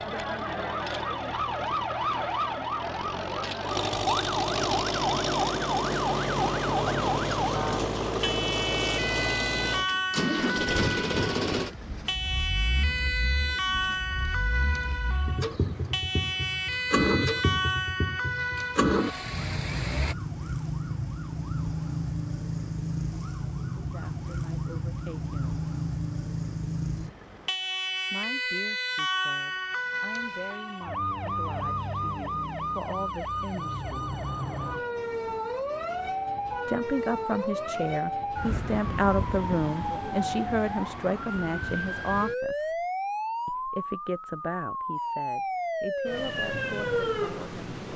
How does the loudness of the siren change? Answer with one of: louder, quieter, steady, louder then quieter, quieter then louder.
steady.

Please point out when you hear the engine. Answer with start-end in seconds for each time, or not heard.
0.0-20.1.